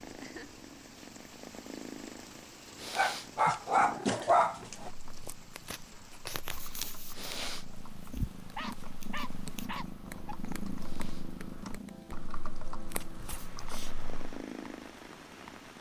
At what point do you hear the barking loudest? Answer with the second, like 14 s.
4 s.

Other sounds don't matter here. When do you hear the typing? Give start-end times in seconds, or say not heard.
4.8-14.4.